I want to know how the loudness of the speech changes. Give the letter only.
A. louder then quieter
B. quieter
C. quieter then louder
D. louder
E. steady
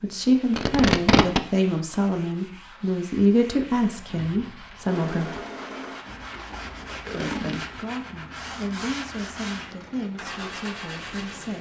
B.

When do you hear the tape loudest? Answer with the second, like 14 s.
1 s.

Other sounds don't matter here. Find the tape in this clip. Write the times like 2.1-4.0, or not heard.
0.5-1.4, 6.2-7.8.